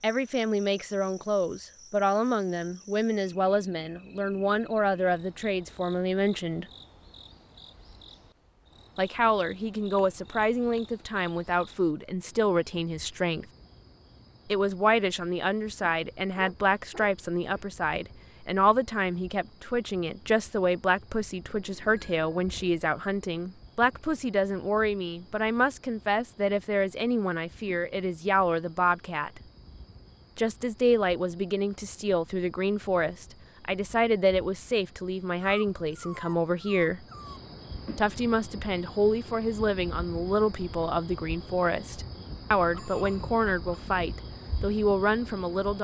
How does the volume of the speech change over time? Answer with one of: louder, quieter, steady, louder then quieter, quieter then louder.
steady.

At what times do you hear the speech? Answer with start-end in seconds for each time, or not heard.
0.0-6.7, 8.9-13.4, 14.4-29.4, 30.4-37.0, 38.0-45.7.